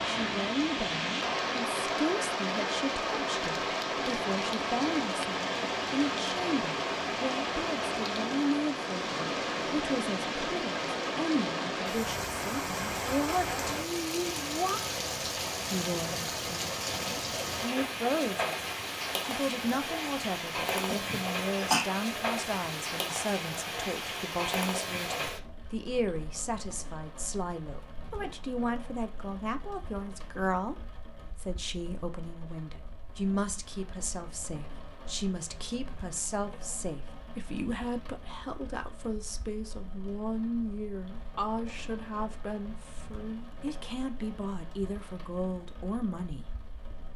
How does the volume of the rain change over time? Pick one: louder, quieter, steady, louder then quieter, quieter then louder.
quieter.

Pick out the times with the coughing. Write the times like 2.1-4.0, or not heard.
20.9-21.9.